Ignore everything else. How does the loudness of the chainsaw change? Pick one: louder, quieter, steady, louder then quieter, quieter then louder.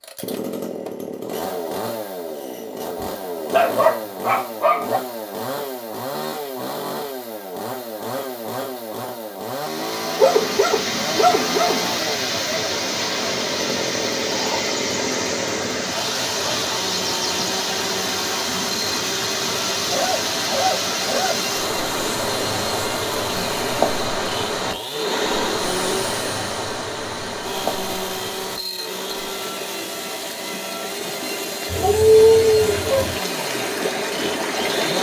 steady.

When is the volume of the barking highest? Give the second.
32 s.